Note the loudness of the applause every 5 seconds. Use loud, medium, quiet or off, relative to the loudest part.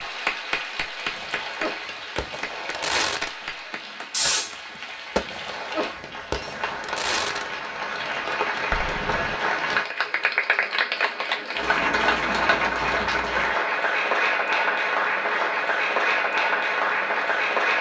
medium, medium, loud, loud.